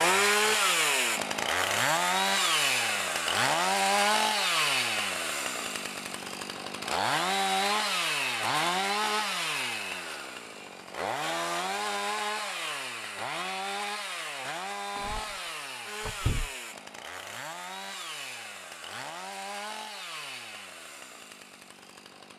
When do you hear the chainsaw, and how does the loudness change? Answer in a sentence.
You can hear the chainsaw from 0.0 to 22.3 s, getting quieter.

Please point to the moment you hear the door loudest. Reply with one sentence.
The loudest moment of the door is at 16 seconds.